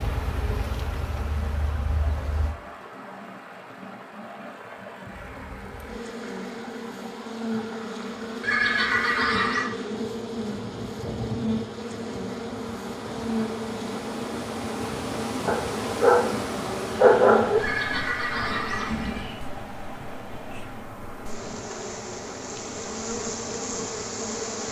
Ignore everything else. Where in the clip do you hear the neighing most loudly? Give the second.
9 s.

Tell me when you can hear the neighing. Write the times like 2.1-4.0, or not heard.
8.4-9.7, 17.6-19.4.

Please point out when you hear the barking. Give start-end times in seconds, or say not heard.
15.4-17.6.